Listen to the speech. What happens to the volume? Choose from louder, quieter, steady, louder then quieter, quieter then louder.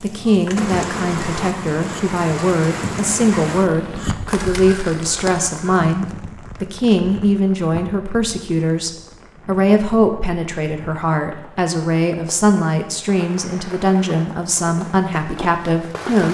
steady.